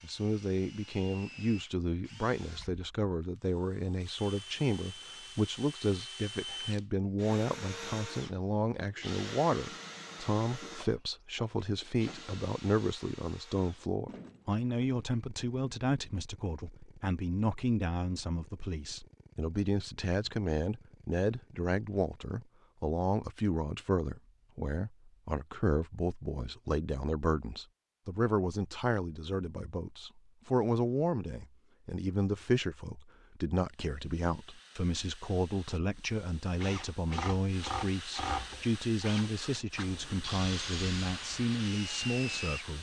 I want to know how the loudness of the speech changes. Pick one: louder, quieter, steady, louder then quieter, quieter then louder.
steady.